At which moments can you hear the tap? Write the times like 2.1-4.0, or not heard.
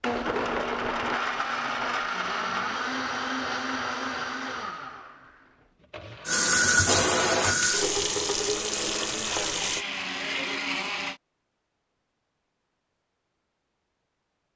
6.2-9.8.